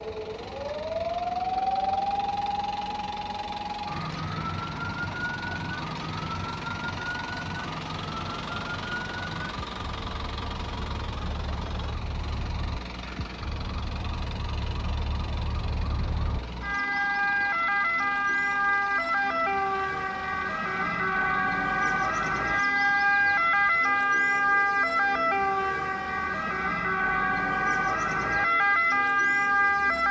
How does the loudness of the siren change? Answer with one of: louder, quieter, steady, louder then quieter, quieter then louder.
quieter then louder.